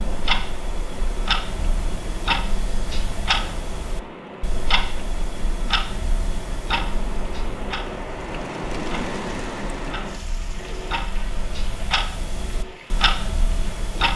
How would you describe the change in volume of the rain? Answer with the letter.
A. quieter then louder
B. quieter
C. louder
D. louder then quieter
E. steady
D.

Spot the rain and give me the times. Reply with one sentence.
The rain can be heard from 0.0 to 13.9 s.